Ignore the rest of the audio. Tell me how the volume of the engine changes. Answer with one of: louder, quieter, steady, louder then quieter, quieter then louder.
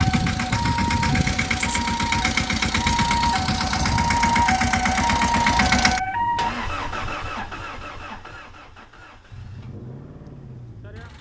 quieter.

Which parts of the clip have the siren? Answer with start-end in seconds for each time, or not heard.
0.0-6.5.